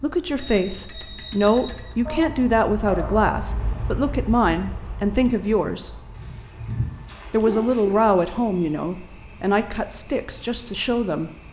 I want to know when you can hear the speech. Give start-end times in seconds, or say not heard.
0.0-5.9, 7.3-11.3.